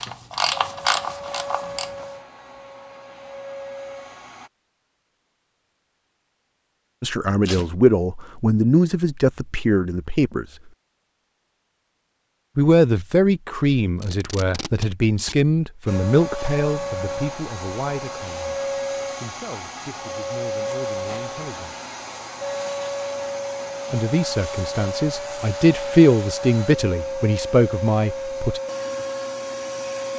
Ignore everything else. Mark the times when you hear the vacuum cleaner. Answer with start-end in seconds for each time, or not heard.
0.0-4.5, 15.8-30.1.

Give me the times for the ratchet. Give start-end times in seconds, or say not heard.
0.0-2.0.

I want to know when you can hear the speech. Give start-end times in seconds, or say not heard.
7.0-10.4, 12.6-18.6, 19.2-21.8, 23.9-28.6.